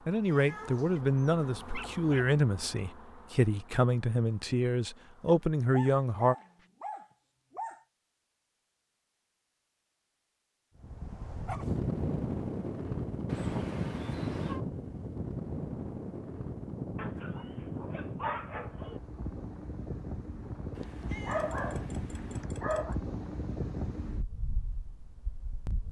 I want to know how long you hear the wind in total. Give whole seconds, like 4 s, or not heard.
15 s.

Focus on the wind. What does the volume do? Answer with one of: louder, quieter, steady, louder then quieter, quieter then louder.
quieter.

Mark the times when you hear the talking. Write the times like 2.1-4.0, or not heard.
0.1-6.3.